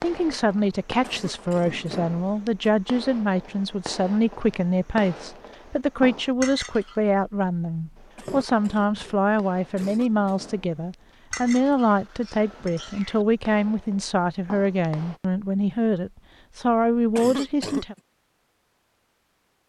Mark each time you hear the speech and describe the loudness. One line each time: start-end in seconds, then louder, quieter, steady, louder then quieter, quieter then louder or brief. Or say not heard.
0.0-17.9 steady.